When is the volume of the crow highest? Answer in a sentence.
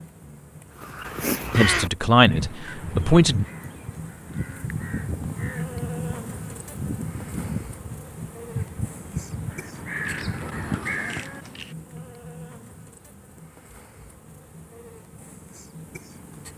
The loudest moment of the crow is at 2 seconds.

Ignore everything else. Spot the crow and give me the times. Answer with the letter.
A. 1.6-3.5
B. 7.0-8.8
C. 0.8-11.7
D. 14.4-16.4
C.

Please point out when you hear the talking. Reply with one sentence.
You can hear the talking from 1.6 to 3.5 s.